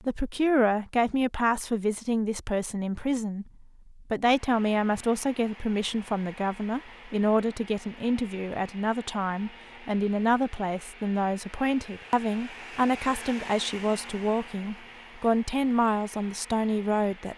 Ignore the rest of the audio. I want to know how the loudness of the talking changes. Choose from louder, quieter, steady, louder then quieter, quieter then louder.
steady.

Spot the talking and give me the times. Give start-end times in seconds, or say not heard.
0.0-17.3.